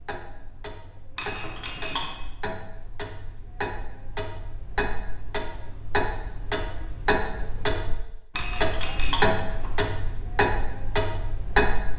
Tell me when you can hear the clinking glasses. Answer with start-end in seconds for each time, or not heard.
1.1-2.1, 8.3-9.7.